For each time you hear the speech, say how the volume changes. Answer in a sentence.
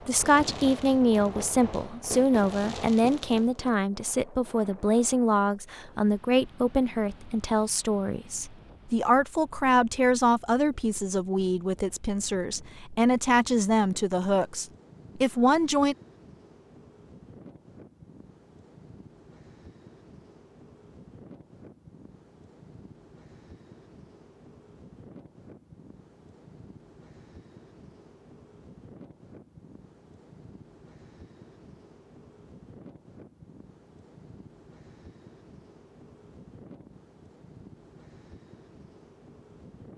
You can hear the speech from 0.1 to 15.9 s, at a steady volume.